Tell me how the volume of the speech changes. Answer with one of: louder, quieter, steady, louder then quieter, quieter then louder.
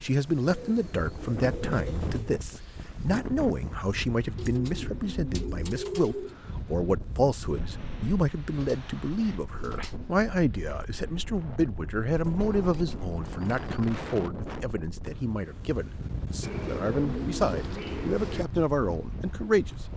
steady.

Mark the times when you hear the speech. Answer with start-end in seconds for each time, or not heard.
0.0-19.8.